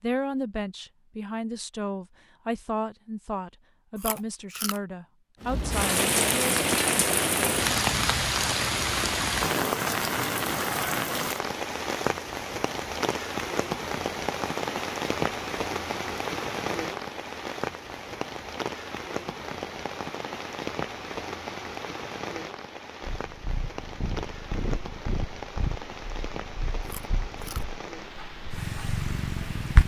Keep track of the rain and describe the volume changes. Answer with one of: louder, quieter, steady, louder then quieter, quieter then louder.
quieter.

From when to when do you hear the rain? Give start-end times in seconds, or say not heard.
5.4-29.8.